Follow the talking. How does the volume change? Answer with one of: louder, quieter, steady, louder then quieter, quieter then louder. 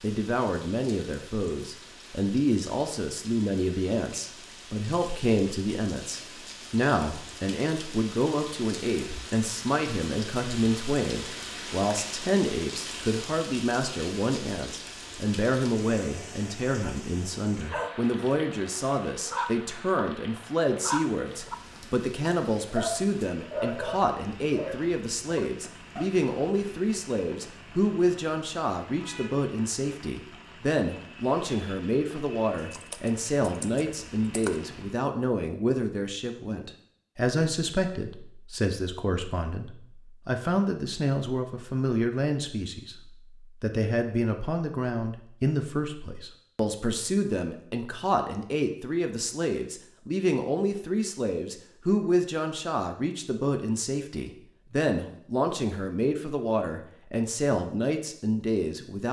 steady.